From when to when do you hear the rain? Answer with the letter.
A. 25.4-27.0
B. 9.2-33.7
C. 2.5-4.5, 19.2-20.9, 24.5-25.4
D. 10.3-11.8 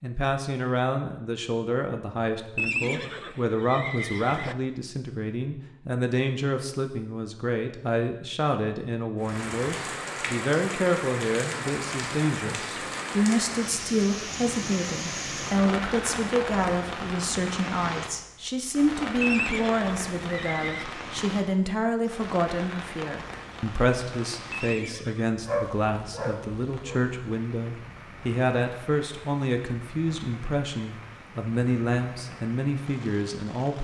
B.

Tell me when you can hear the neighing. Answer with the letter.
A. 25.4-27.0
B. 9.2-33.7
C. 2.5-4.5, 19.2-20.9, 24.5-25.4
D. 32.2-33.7
C.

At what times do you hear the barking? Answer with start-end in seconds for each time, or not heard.
25.4-27.0.